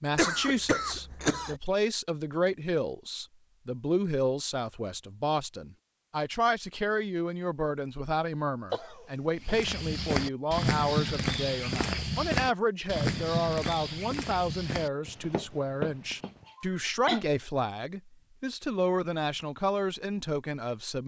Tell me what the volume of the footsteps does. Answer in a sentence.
The volume of the footsteps goes down.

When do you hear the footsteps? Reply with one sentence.
You can hear the footsteps from 9.4 to 16.4 s.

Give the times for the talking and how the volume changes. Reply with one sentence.
You can hear the talking from 0.0 to 21.0 s, at a steady volume.